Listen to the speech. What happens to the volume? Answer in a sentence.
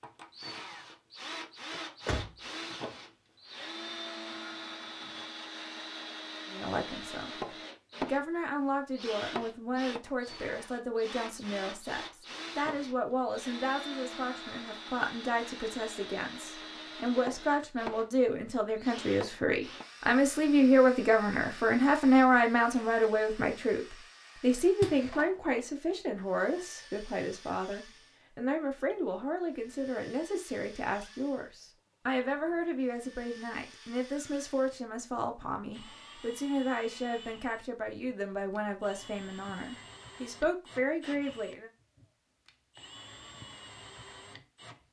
The loudness of the speech goes up, then down.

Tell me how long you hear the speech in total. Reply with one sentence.
You can hear the speech for 35 seconds altogether.